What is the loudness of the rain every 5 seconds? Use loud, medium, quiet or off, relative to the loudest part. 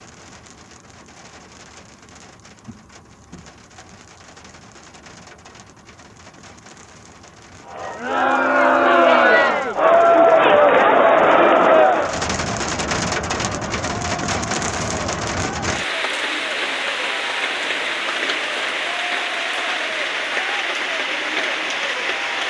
quiet, quiet, loud, loud, loud.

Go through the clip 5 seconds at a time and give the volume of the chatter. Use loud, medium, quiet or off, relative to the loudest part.
off, loud, loud, quiet, quiet.